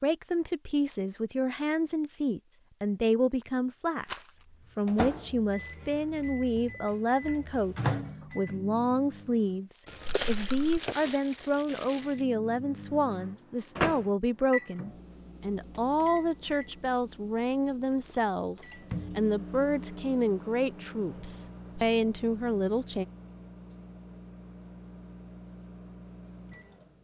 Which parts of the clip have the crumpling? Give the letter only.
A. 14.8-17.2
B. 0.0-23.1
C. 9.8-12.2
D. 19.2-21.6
C.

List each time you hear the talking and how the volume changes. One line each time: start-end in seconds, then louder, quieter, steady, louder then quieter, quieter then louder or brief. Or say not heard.
0.0-23.1 steady.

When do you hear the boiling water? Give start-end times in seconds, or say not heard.
not heard.